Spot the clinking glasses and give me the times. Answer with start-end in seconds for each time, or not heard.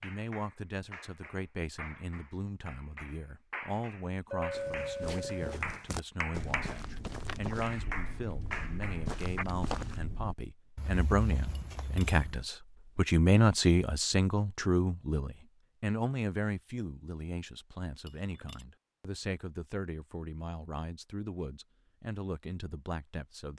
4.3-5.5, 11.6-12.2, 18.1-18.6.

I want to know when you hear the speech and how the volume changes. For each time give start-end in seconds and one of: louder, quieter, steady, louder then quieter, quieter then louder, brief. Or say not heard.
0.0-23.5 louder then quieter.